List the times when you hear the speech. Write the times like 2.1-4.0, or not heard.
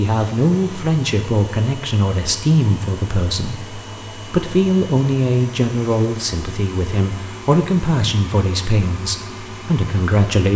0.0-10.5.